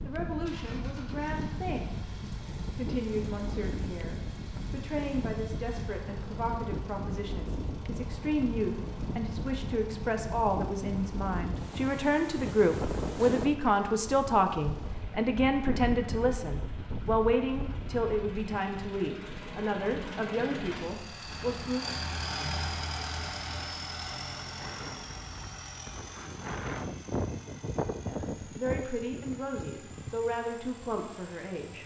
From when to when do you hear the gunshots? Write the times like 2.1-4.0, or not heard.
not heard.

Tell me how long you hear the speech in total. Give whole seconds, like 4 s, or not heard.
25 s.